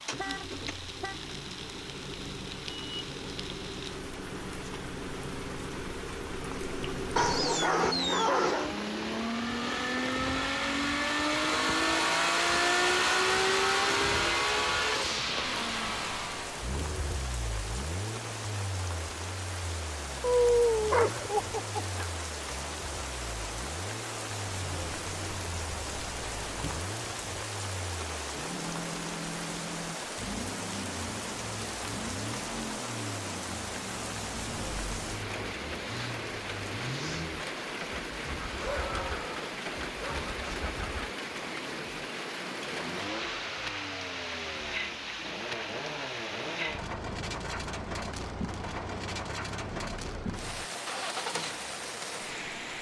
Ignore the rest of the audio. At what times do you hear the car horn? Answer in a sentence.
The car horn can be heard from 0.1 to 1.2 s.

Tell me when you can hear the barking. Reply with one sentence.
The barking can be heard from 7.2 to 8.7 s, from 20.2 to 22.1 s and from 38.5 to 40.3 s.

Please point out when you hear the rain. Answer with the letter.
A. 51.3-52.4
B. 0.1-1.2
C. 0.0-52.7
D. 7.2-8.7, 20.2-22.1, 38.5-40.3
C.